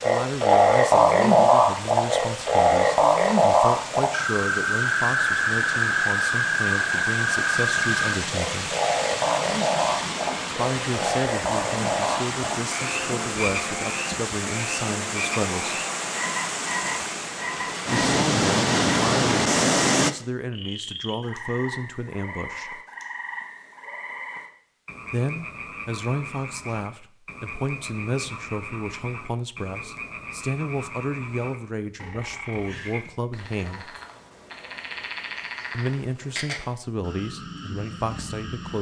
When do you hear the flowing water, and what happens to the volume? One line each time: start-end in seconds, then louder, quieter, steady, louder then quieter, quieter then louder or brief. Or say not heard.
0.0-20.1 louder.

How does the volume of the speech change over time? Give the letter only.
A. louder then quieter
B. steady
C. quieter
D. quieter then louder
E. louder
B.